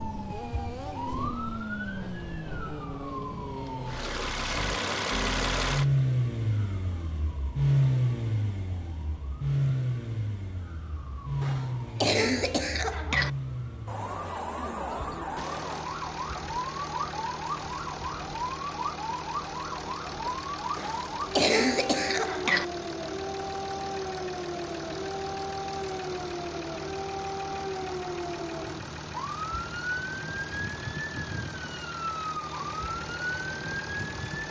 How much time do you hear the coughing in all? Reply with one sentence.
The coughing can be heard for 4 seconds in total.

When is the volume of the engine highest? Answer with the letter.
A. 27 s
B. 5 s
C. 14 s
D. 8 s
D.